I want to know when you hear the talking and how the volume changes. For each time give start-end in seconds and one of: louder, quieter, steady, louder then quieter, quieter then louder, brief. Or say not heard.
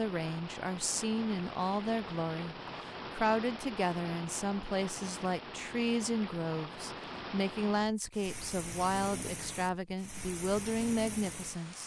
0.0-11.8 steady.